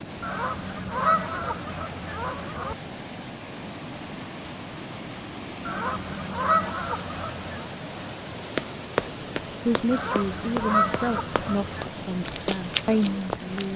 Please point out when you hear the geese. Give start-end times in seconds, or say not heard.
0.2-2.8, 5.7-7.7, 9.9-11.8.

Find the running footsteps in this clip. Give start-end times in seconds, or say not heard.
8.6-13.7.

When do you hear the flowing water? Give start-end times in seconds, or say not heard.
0.0-13.7.